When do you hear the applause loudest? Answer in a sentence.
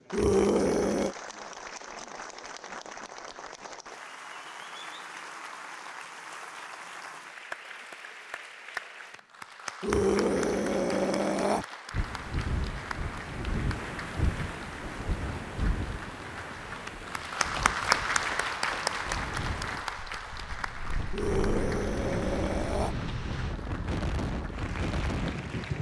The volume of the applause peaks at 18 seconds.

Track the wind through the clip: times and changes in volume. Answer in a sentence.
The wind can be heard from 11.9 to 25.7 s, getting quieter then louder.